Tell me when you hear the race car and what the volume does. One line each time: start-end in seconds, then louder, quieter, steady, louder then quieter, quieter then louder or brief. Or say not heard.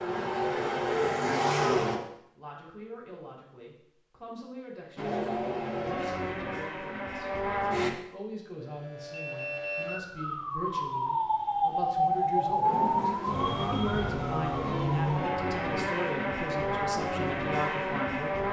0.0-2.0 brief
5.0-7.9 brief
12.6-18.4 steady.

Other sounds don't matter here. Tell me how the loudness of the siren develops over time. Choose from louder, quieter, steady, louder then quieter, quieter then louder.
louder then quieter.